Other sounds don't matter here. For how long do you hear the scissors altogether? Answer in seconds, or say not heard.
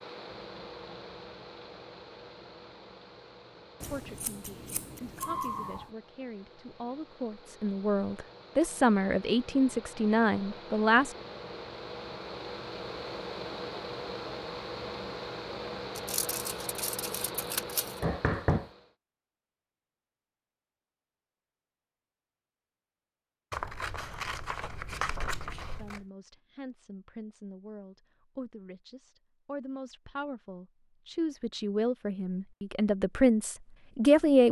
7 s.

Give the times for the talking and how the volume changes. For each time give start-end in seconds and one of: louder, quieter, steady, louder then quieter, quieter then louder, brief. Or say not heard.
3.9-11.2 louder
25.8-34.4 louder.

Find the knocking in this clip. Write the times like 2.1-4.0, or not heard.
18.0-18.7.